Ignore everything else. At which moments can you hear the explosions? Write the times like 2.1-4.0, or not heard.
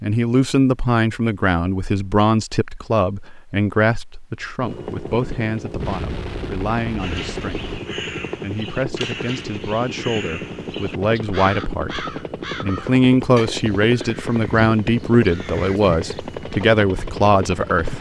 5.8-7.8.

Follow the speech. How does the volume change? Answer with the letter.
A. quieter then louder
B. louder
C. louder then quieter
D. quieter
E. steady
A.